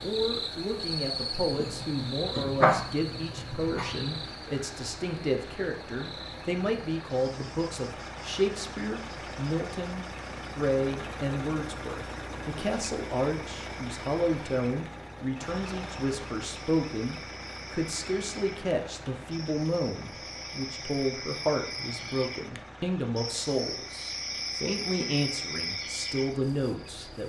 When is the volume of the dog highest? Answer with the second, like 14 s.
3 s.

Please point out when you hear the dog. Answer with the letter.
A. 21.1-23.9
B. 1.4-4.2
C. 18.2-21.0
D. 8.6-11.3
B.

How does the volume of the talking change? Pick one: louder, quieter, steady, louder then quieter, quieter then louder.
steady.